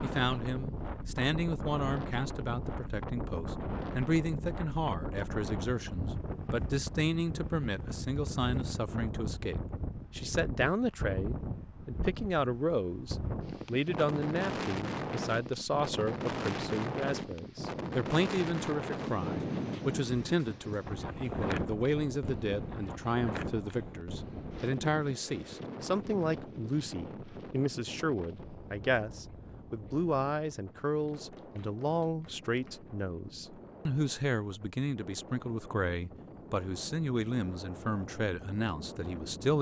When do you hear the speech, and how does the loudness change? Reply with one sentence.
You can hear the speech from 0.0 to 39.5 s, at a steady volume.